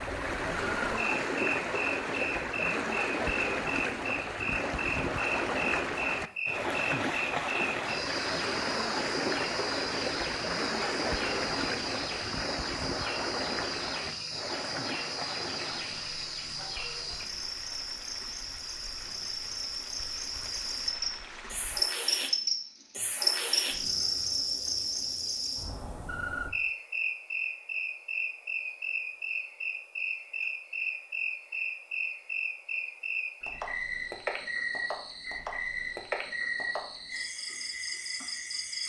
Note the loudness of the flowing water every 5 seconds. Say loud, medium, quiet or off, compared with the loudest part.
loud, loud, loud, quiet, quiet, off, off, off.